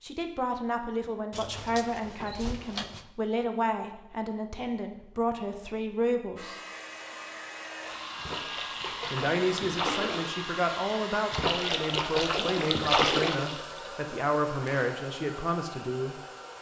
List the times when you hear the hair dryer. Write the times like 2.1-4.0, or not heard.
6.3-16.5.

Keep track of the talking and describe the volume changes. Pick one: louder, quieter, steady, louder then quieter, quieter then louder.
steady.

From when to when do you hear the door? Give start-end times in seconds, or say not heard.
1.3-3.0.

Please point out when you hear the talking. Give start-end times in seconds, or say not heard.
0.0-6.5, 9.1-16.2.